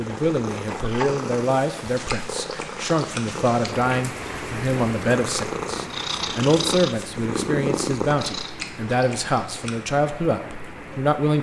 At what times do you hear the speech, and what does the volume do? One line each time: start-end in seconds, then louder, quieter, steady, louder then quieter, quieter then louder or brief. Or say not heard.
0.0-11.3 steady.